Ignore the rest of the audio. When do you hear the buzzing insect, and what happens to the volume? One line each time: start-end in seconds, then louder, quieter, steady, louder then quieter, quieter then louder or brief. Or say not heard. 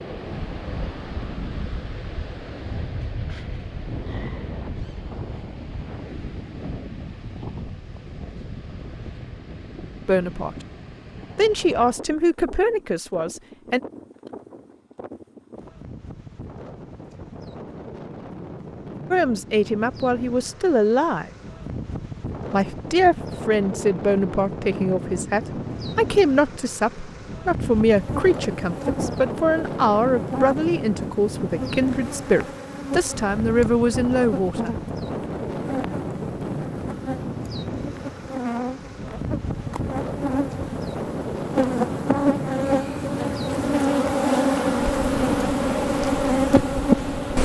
27.9-47.4 louder.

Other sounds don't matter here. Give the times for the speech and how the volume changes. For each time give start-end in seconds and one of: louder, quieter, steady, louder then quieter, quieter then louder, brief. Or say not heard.
10.1-10.6 brief
11.3-13.8 brief
19.1-21.3 brief
22.5-34.7 steady.